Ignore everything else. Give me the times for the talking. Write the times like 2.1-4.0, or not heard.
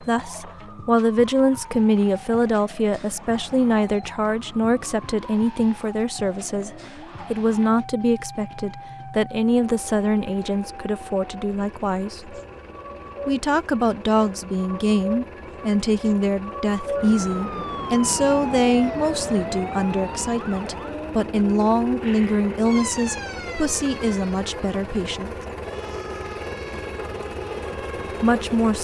0.0-12.3, 13.2-25.4, 27.7-28.8.